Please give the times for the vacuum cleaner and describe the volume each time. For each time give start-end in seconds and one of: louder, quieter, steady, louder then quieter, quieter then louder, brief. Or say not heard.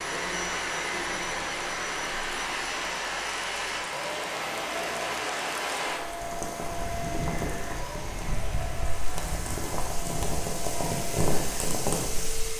0.0-12.5 quieter.